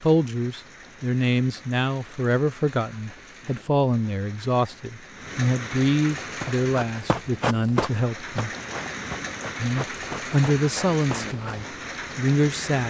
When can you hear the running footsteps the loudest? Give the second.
8 s.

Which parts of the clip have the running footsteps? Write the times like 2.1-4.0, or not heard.
6.3-11.6.